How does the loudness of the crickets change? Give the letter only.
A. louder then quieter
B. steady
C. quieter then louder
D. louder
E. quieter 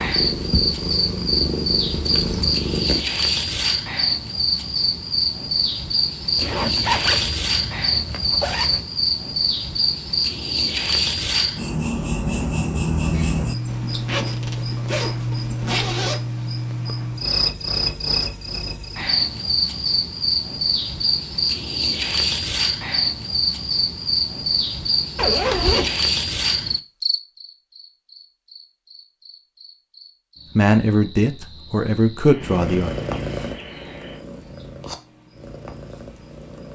E.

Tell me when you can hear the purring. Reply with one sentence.
You can hear the purring from 0.0 to 3.0 s and from 32.4 to 36.7 s.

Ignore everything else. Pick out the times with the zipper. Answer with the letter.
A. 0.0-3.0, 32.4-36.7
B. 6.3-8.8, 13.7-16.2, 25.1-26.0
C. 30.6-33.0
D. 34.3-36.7
B.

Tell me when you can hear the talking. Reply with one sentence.
You can hear the talking from 30.6 to 33.0 s.